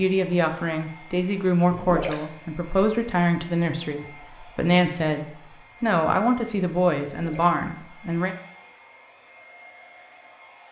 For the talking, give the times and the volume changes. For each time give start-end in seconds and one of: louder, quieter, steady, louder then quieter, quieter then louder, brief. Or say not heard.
0.0-8.3 steady.